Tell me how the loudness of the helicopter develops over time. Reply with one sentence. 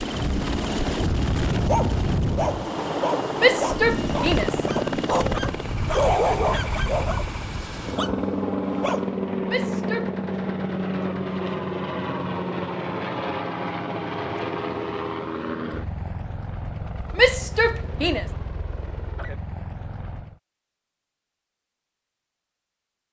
The loudness of the helicopter goes down.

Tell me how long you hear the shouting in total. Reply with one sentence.
You can hear the shouting for 3 seconds altogether.